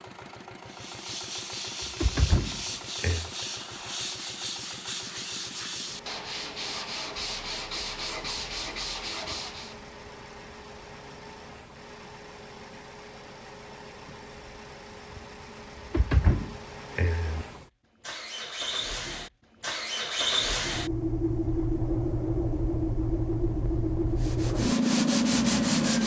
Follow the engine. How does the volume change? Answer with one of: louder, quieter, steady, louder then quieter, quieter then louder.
louder.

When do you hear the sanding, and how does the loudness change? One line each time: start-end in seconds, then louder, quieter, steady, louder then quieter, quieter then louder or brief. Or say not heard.
0.7-9.8 steady
24.1-26.0 brief.